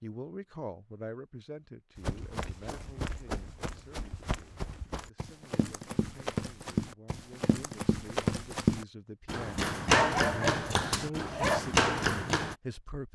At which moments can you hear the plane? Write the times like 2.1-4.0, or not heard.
not heard.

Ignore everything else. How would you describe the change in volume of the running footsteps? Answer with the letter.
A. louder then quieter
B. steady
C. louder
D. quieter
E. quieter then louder
C.